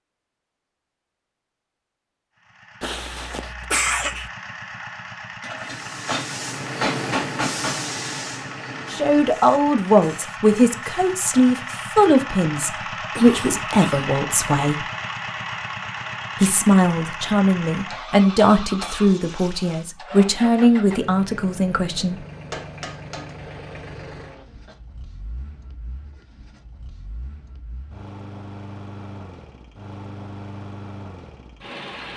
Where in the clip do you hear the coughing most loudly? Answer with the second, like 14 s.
4 s.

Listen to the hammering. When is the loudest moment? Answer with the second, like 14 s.
7 s.